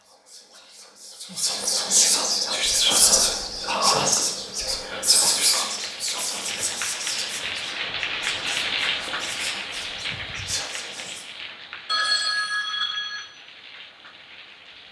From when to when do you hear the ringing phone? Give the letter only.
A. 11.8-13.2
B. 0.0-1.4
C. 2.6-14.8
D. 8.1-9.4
A.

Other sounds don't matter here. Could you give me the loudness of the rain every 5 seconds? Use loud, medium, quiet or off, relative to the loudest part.
quiet, loud, medium.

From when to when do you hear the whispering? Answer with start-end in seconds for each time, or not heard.
0.0-11.2.